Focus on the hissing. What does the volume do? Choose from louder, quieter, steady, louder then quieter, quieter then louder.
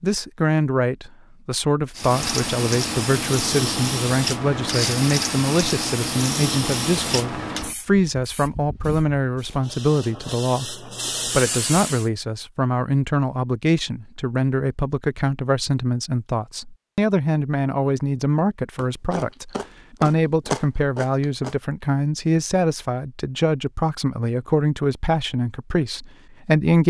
quieter then louder.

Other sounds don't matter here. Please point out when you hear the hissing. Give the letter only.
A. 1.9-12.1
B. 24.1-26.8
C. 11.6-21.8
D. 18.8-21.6
A.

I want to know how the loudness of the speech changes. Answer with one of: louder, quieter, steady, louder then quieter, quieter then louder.
steady.